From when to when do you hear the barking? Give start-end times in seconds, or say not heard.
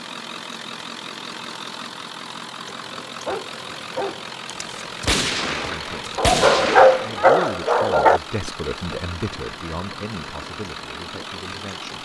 2.8-4.2, 6.2-8.2.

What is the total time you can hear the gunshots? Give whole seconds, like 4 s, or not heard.
3 s.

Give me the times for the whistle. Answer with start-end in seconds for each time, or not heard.
not heard.